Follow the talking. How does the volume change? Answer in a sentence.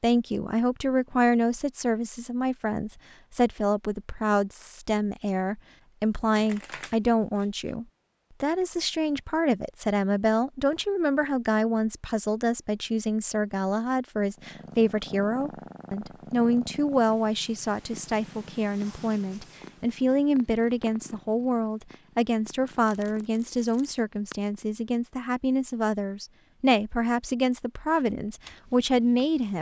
The loudness of the talking stays about the same.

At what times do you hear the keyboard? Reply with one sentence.
You can hear the keyboard from 28.4 to 29.5 s.